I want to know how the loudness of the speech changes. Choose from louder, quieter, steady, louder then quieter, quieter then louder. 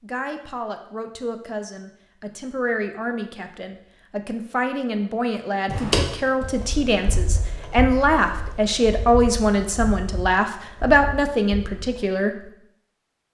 louder.